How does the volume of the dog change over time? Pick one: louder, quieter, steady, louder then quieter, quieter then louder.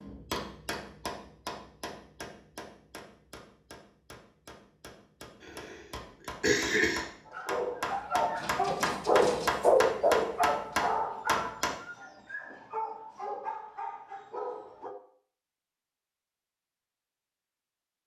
louder then quieter.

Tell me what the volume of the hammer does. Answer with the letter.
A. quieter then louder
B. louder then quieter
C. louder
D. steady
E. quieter
A.